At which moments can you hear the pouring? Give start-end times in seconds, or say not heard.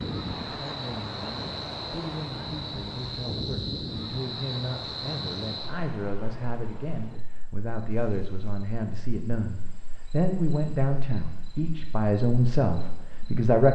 not heard.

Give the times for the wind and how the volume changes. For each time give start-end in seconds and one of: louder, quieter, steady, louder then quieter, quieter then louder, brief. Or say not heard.
0.0-7.2 quieter.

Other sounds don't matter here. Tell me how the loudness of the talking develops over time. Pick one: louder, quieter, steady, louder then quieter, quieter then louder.
louder.